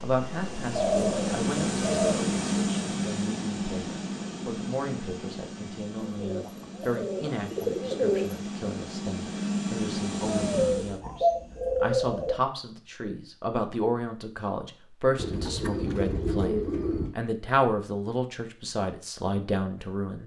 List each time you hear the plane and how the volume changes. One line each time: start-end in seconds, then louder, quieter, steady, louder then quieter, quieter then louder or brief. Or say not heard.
0.0-11.0 quieter then louder.